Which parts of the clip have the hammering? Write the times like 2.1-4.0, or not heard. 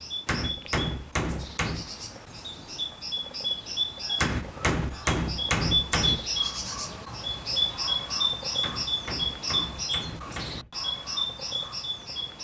0.2-1.9, 4.2-6.2, 8.6-10.7.